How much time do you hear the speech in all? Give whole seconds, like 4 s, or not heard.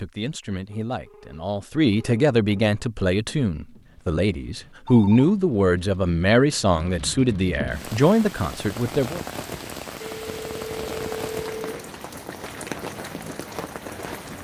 9 s.